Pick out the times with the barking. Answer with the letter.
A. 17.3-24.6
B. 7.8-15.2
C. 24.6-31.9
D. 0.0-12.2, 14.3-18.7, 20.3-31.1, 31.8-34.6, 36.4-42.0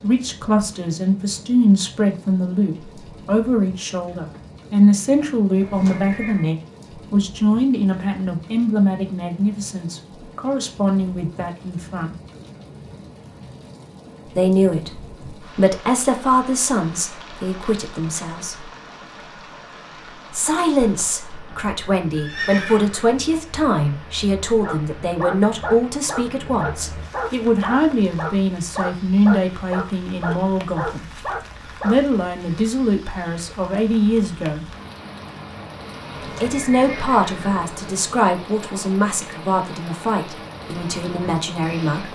C.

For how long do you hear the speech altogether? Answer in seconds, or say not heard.
36 s.